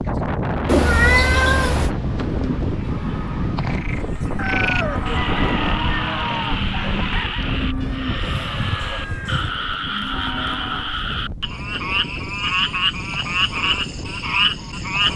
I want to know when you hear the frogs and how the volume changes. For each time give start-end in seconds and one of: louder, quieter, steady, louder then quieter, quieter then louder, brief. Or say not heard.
3.5-15.1 louder.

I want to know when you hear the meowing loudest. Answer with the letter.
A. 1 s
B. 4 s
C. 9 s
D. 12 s
A.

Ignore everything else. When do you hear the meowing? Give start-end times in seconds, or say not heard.
0.7-1.9, 7.8-9.5.